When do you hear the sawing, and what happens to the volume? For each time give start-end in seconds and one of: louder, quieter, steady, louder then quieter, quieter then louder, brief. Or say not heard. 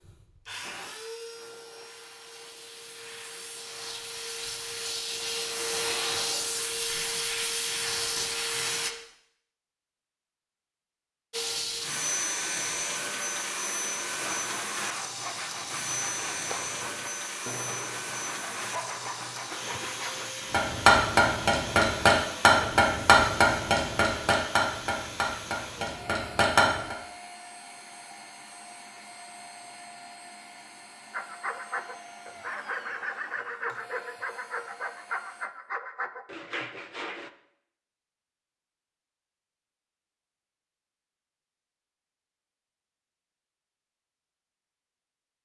14.1-20.4 steady
31.1-37.3 steady.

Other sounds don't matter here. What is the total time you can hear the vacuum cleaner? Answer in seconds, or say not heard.
33 s.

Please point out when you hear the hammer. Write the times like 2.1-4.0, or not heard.
20.5-26.9.